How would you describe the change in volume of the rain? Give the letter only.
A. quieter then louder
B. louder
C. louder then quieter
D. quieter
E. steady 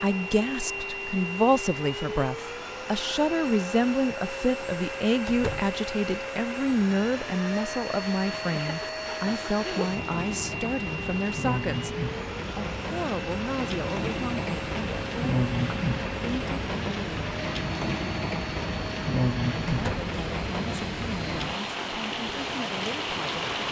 B.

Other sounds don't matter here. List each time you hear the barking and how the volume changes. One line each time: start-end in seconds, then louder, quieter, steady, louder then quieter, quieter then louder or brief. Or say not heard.
not heard.